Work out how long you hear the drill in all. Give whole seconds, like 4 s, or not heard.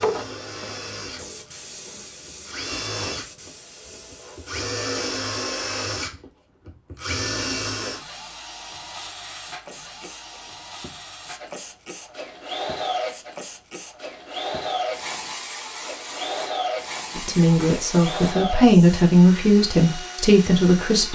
21 s.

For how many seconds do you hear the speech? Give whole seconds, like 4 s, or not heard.
4 s.